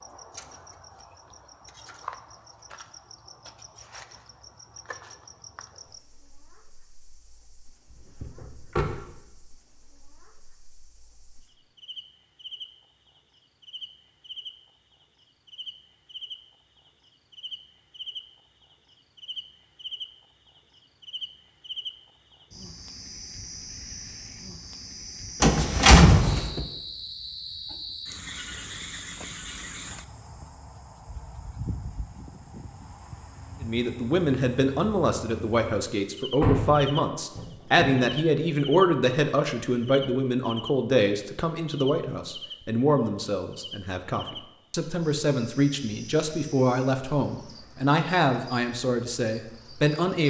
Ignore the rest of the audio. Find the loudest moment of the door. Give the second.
26 s.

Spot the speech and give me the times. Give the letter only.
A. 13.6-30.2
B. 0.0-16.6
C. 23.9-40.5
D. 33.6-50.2
D.